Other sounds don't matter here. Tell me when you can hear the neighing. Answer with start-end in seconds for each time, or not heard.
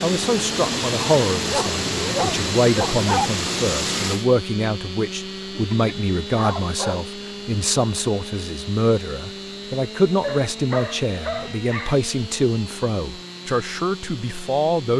not heard.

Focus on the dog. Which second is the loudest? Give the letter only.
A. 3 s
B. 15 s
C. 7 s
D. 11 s
A.